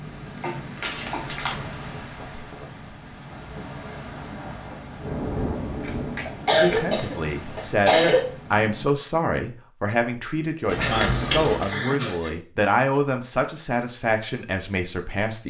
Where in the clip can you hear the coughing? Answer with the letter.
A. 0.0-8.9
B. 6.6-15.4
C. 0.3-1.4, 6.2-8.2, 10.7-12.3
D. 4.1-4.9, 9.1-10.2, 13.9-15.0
C.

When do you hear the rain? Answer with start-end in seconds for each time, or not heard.
0.0-8.9.